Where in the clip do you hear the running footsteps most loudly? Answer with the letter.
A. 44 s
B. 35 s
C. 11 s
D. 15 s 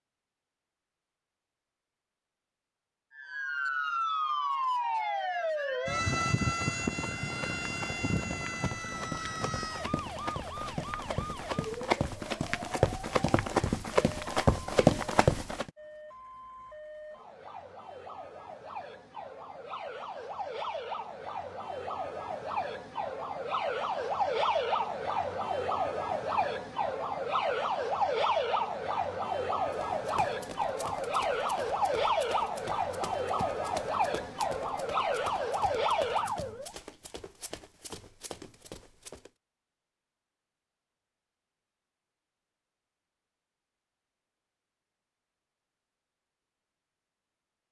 D.